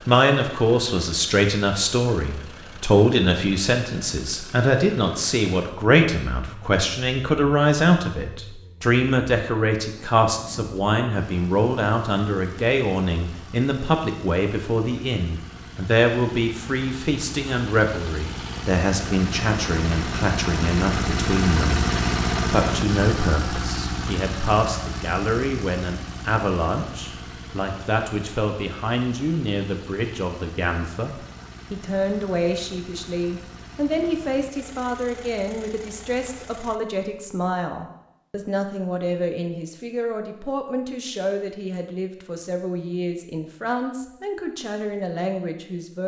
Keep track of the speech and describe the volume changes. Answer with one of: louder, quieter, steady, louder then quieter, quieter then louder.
quieter.